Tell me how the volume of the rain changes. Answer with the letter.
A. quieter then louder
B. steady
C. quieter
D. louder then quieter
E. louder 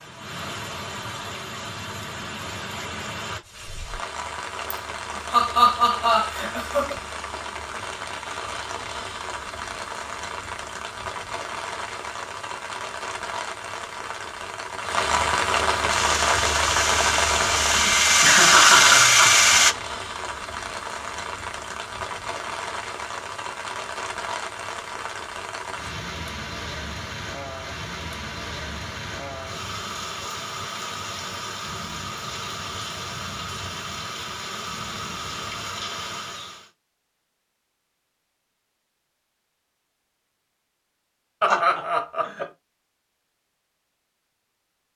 D.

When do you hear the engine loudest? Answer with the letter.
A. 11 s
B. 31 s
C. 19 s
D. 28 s
C.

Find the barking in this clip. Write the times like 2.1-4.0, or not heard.
not heard.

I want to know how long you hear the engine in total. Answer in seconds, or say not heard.
4 s.